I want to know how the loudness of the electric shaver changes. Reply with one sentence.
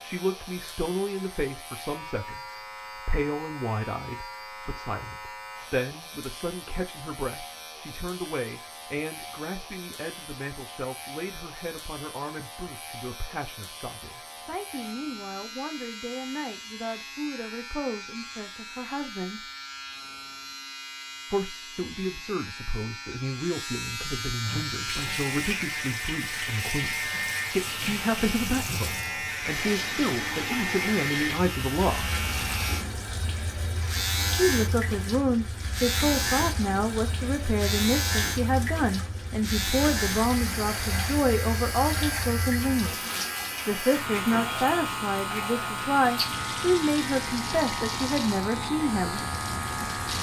The volume of the electric shaver goes up.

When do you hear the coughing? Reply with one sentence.
The coughing can't be heard in this clip.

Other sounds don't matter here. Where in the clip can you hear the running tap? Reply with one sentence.
The running tap can be heard from 24.4 to 50.1 s.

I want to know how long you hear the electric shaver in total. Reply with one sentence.
You can hear the electric shaver for 50 seconds altogether.